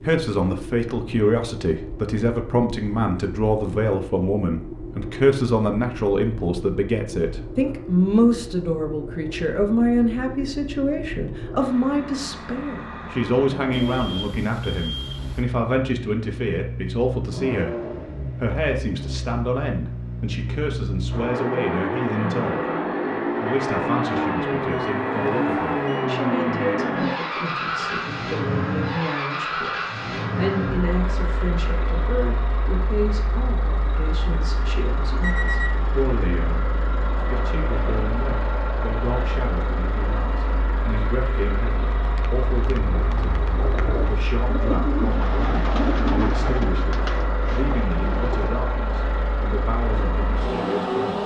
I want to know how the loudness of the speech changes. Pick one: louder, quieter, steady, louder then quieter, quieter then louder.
quieter.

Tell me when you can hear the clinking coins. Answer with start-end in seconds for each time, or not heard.
not heard.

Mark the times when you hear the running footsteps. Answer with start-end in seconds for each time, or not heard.
not heard.